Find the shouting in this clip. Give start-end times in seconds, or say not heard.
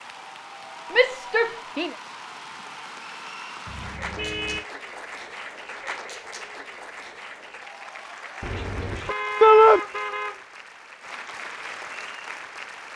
0.9-1.9, 9.4-9.8.